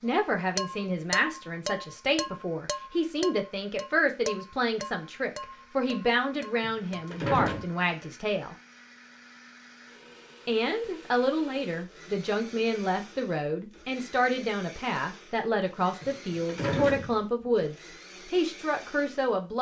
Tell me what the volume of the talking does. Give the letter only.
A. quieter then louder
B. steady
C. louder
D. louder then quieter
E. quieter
B.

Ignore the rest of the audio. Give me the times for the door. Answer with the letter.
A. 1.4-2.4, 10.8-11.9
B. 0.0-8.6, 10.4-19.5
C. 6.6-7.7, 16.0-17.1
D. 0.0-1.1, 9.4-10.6
C.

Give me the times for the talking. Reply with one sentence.
You can hear the talking from 0.0 to 8.6 s and from 10.4 to 19.5 s.